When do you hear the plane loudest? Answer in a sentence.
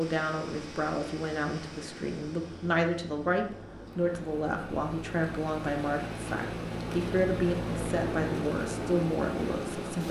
The volume of the plane peaks at 8 seconds.